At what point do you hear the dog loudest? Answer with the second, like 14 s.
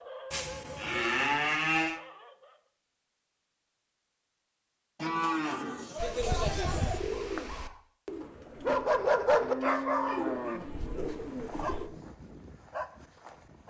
9 s.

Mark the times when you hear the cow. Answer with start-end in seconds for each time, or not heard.
0.3-2.0, 5.0-7.0, 9.4-10.6.